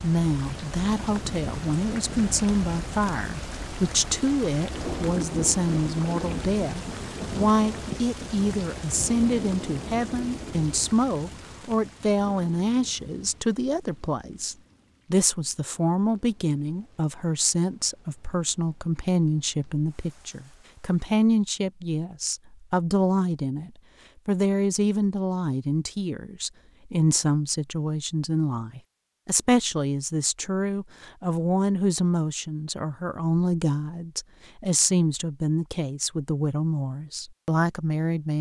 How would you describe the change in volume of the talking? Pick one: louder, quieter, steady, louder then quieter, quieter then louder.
steady.